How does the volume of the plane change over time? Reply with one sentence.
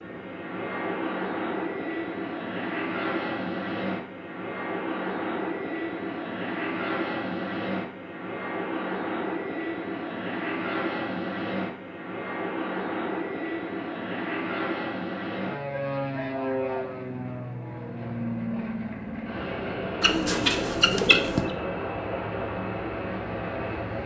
The loudness of the plane stays about the same.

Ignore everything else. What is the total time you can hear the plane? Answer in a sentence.
You can hear the plane for 24 seconds altogether.